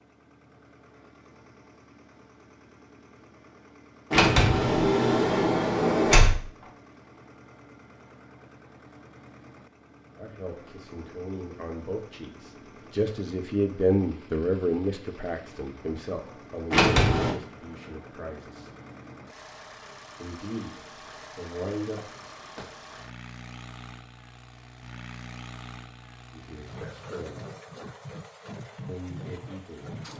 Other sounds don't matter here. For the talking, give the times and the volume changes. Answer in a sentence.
You can hear the talking from 10.2 to 18.7 s, getting louder then quieter; briefly from 20.1 to 20.8 s; briefly from 21.4 to 22.1 s; briefly from 26.3 to 27.4 s; and briefly from 28.9 to 29.9 s.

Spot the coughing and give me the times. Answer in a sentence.
You can't hear the coughing here.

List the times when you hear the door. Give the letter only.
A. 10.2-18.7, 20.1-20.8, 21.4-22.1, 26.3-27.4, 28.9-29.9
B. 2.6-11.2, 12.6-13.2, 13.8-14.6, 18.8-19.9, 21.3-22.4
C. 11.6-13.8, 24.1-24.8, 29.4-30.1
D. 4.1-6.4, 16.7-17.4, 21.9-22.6
D.